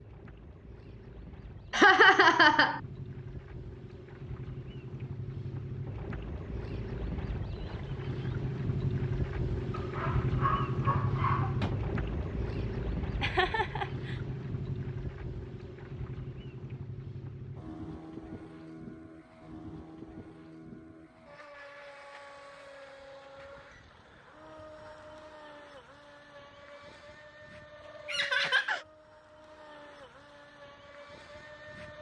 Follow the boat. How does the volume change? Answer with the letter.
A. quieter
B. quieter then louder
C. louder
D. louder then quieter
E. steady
D.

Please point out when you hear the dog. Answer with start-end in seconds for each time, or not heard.
9.7-11.8.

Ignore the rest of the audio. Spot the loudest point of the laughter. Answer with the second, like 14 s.
2 s.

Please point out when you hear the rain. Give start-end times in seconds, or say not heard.
not heard.